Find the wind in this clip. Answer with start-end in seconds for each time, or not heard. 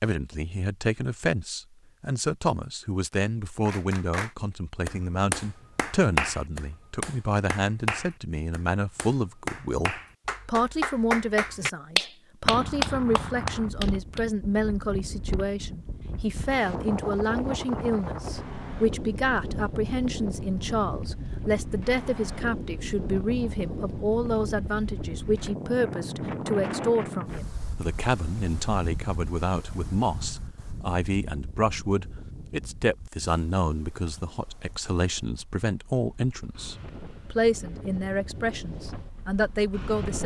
12.4-40.2.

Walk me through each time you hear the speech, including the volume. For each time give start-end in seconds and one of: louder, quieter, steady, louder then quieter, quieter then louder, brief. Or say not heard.
0.0-40.2 steady.